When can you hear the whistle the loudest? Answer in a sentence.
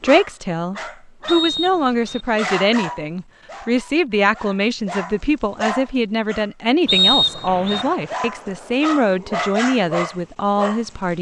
The loudest moment of the whistle is at 7 seconds.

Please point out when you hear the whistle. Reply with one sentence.
You can hear the whistle from 1.2 to 2.2 s and from 6.8 to 7.8 s.